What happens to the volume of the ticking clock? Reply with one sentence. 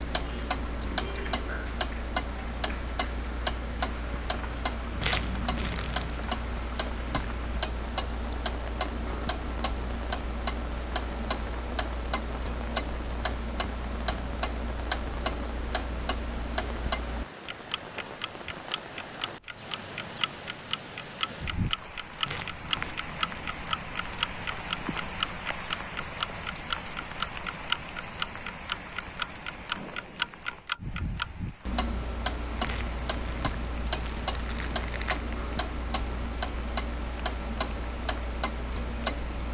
The volume of the ticking clock goes up, then down.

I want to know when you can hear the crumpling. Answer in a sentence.
The crumpling can be heard from 5.0 to 6.2 s, from 22.2 to 22.9 s and from 32.6 to 35.2 s.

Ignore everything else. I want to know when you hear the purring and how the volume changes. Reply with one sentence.
The purring can't be heard in this clip.